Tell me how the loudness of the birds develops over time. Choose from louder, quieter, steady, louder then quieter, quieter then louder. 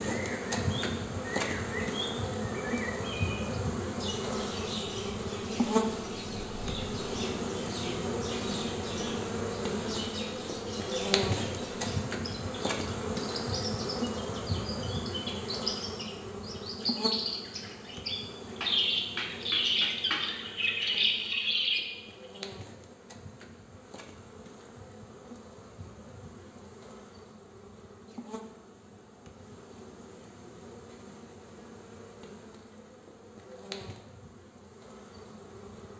louder.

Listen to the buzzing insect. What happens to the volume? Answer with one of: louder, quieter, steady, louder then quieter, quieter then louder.
quieter.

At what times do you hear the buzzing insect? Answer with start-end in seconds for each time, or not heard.
0.0-35.9.